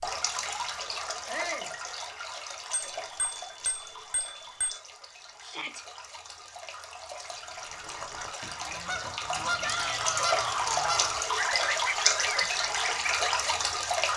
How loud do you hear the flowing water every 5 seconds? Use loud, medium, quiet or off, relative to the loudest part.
medium, medium, loud.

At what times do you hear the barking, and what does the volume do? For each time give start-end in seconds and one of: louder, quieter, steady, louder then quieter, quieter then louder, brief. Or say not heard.
not heard.